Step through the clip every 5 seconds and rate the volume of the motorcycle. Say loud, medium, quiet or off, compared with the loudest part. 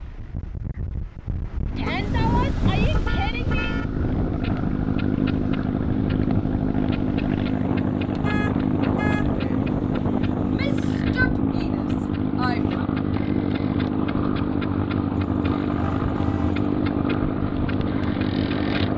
medium, loud, loud, loud.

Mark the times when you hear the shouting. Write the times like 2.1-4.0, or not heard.
1.8-3.8, 10.4-12.8.